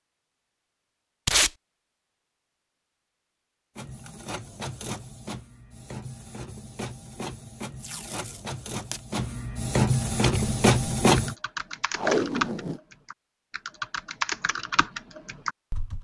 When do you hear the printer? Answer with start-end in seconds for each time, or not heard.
3.8-11.3.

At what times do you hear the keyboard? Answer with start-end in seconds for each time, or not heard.
9.9-15.9.